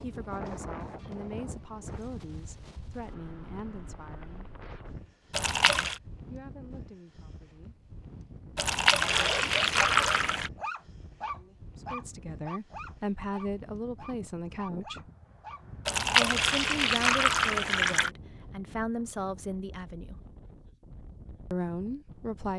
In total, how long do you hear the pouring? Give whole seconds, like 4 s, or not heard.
5 s.